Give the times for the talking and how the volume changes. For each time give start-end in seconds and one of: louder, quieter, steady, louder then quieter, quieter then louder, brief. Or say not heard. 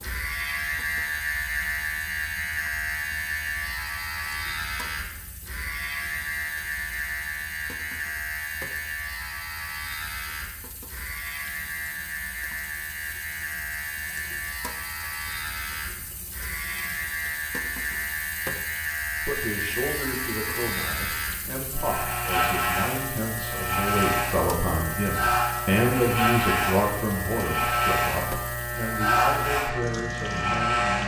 19.2-31.0 louder then quieter.